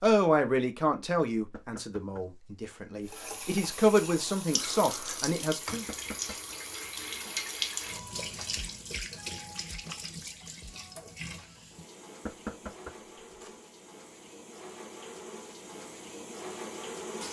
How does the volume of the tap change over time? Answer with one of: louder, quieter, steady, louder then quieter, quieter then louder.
quieter then louder.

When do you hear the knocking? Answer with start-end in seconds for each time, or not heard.
1.5-2.8, 5.8-6.5, 12.2-13.5.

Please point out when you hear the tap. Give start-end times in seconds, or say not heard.
3.0-17.2.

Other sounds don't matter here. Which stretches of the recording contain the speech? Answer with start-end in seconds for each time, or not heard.
0.0-5.8.